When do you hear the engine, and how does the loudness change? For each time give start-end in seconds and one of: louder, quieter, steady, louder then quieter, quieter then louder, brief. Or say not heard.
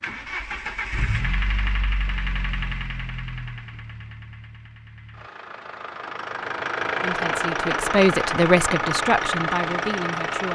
0.0-10.5 quieter then louder.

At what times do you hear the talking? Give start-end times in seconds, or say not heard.
7.0-10.5.